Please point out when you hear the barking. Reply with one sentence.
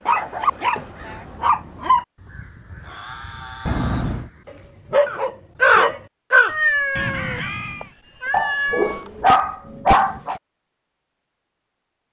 The barking can be heard from 0.1 to 2.0 s, from 4.5 to 6.0 s and from 8.3 to 10.4 s.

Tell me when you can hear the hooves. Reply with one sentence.
You can't hear the hooves here.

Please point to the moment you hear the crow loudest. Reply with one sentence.
The volume of the crow peaks at 6 seconds.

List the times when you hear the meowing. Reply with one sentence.
You can hear the meowing from 3.6 to 4.3 s and from 6.5 to 9.1 s.